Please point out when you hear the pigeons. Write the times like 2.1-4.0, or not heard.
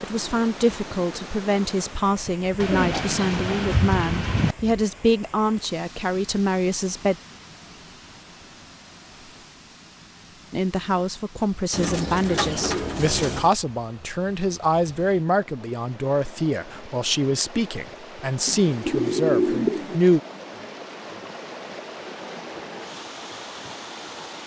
2.6-4.5, 11.7-13.5, 18.4-19.9.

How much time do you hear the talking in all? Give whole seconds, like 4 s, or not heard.
17 s.